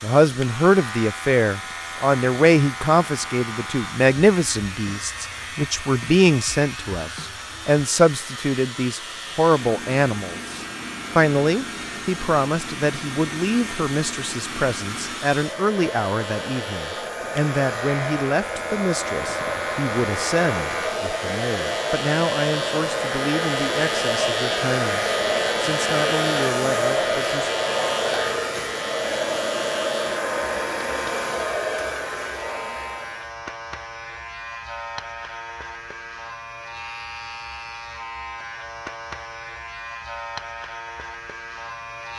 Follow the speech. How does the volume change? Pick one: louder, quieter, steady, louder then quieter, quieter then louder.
quieter.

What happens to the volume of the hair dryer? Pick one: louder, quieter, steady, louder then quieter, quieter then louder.
louder.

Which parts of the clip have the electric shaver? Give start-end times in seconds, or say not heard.
0.2-42.1.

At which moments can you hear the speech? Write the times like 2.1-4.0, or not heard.
0.0-27.5.